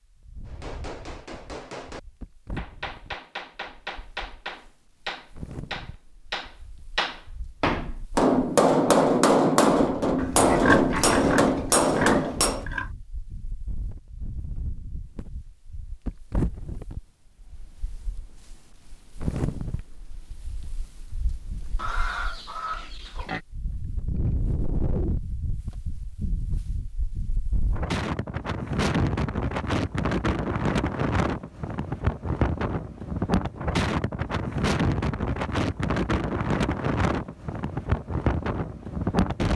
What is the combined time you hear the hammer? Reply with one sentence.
You can hear the hammer for 12 seconds altogether.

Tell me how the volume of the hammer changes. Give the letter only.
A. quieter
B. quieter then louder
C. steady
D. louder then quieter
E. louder
E.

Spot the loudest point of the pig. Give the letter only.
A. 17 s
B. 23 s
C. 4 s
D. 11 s
D.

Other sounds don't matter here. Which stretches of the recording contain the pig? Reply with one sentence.
You can hear the pig from 10.2 to 12.9 s and from 21.8 to 23.4 s.